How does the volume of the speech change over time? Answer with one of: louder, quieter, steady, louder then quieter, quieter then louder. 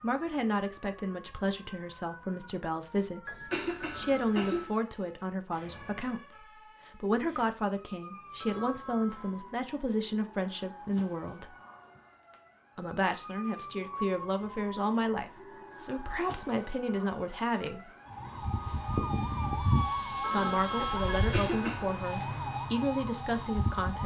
steady.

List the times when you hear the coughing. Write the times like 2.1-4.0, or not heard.
3.2-4.7, 21.1-21.9.